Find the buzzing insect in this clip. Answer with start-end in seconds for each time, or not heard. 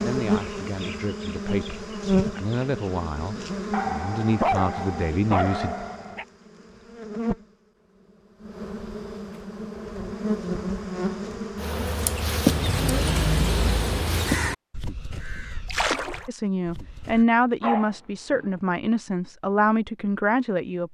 0.0-7.5, 8.4-14.4.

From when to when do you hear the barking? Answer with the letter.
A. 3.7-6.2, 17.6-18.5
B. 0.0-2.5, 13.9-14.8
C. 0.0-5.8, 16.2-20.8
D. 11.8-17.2
A.